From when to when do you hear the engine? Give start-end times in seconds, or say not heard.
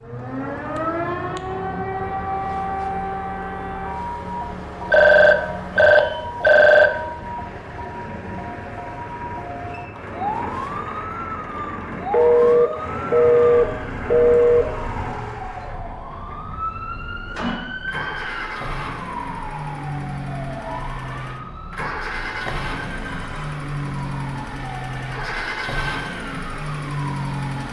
0.0-27.6.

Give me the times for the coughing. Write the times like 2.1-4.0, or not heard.
not heard.